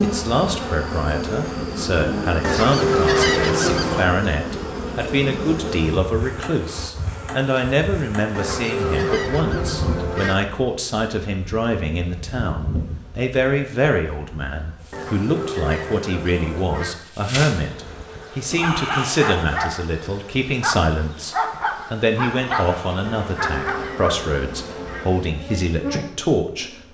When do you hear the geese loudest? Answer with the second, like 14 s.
3 s.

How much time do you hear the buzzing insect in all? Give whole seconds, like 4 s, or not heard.
27 s.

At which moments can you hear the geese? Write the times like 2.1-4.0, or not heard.
2.4-4.0, 8.3-10.3, 14.9-16.9, 23.1-25.1.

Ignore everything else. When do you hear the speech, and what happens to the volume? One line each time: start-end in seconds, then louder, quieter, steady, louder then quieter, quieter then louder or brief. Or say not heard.
0.0-26.9 steady.